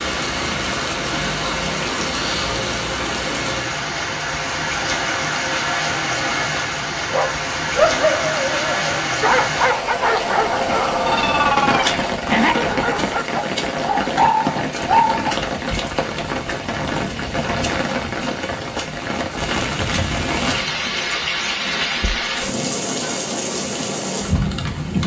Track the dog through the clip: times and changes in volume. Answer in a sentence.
You can hear the dog from 7.1 to 15.2 s, at a steady volume.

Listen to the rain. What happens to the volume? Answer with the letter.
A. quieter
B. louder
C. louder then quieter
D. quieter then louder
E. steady
E.